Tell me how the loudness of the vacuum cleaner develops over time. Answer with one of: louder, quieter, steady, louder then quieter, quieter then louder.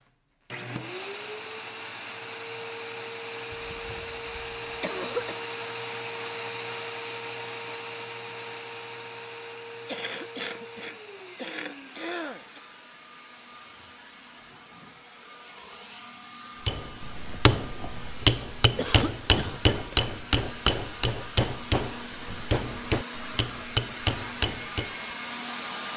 quieter then louder.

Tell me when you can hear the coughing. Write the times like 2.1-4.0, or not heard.
3.5-5.3, 9.8-12.6, 18.8-19.6.